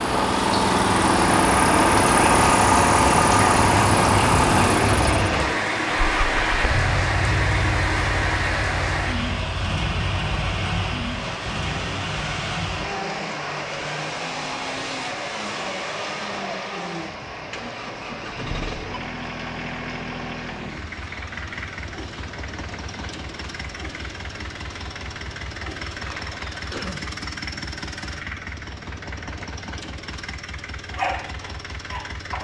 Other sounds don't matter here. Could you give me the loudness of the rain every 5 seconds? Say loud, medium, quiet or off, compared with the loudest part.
loud, loud, medium, medium, quiet, quiet, off.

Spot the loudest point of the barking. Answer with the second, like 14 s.
31 s.